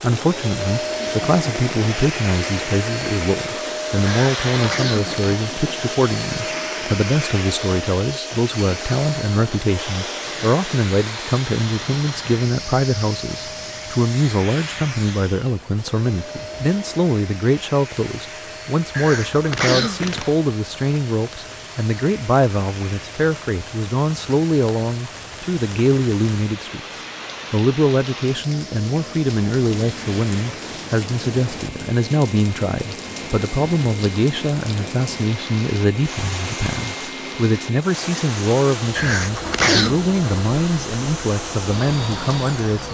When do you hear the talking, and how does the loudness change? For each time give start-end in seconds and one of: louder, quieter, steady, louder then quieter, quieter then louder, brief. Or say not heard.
0.0-42.9 steady.